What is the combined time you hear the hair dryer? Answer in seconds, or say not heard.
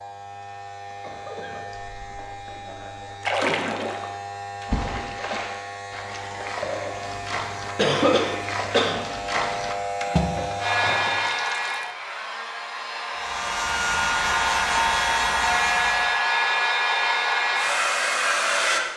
8 s.